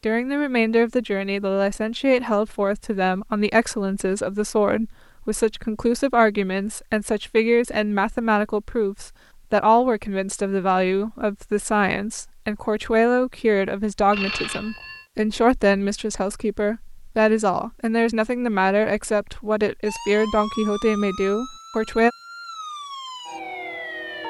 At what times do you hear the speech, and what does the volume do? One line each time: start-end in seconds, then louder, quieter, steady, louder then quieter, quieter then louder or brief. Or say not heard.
0.0-22.1 steady.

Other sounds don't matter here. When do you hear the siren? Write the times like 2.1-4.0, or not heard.
19.9-24.2.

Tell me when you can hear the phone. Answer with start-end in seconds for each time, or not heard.
14.1-15.1.